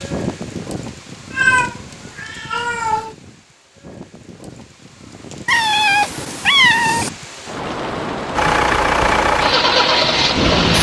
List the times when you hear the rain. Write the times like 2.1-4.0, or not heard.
0.0-10.6.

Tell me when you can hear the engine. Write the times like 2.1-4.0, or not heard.
8.3-10.7.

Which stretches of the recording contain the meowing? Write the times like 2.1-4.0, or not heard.
1.3-3.1, 5.5-7.1.